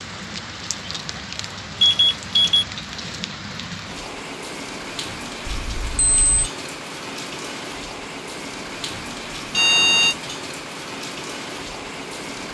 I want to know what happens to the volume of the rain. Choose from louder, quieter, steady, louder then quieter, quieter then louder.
steady.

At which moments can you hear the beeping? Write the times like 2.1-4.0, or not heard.
1.8-2.6, 5.5-6.5, 9.5-10.2.